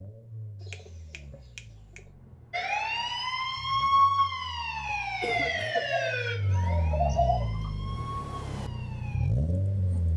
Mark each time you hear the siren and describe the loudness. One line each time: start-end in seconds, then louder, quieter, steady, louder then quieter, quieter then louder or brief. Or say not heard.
2.5-10.1 quieter.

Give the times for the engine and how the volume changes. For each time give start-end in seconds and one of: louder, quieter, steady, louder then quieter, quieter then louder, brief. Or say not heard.
0.0-10.1 louder.